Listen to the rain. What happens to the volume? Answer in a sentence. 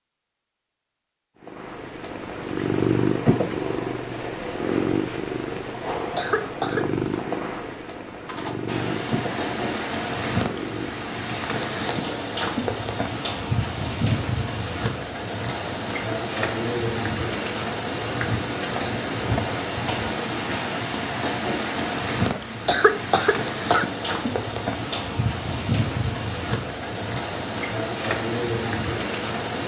The volume of the rain stays about the same.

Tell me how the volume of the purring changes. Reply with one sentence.
The loudness of the purring goes down.